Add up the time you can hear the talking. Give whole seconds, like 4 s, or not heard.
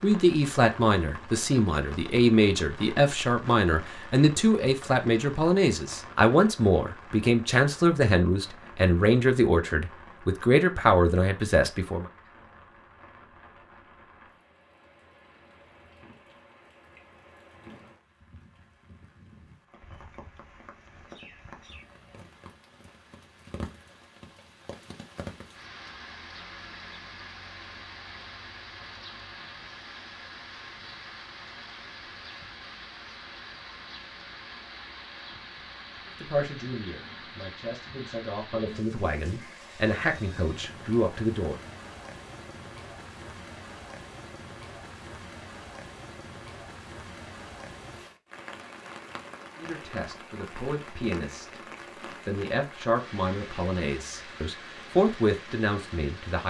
24 s.